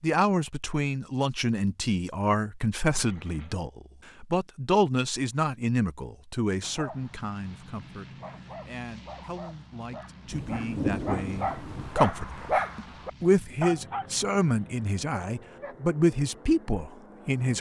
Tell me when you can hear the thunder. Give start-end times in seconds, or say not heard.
10.3-12.0.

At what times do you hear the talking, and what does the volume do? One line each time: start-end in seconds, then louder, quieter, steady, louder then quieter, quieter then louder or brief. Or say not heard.
0.0-17.5 quieter then louder.